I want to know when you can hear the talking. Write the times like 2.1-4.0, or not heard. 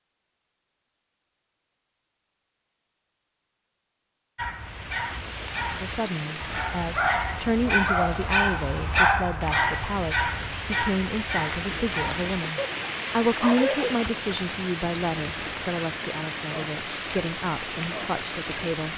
5.8-18.9.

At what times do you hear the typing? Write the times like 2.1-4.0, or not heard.
not heard.